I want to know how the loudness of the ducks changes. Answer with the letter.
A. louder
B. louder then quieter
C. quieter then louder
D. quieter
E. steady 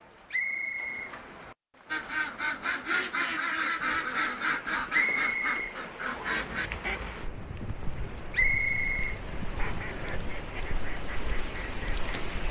D.